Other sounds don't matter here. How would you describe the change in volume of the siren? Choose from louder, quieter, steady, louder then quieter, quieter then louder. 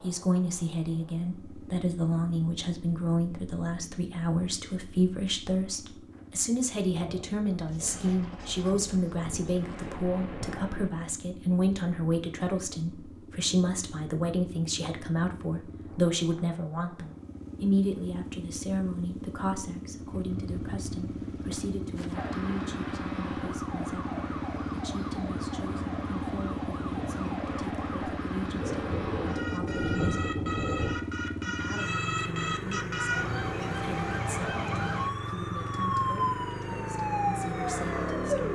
louder.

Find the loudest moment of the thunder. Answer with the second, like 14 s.
30 s.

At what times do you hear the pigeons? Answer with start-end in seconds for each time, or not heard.
not heard.